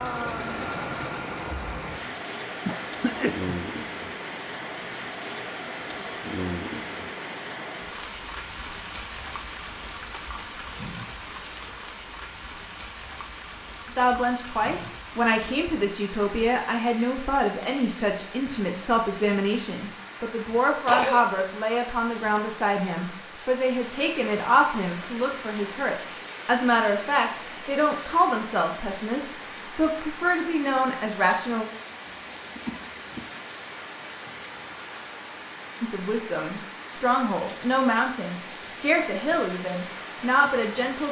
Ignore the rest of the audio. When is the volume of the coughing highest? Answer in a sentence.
The volume of the coughing peaks at 21 seconds.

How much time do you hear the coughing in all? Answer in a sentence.
You can hear the coughing for 3 seconds altogether.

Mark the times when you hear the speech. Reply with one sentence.
The speech can be heard from 13.9 to 31.6 s and from 35.8 to 41.0 s.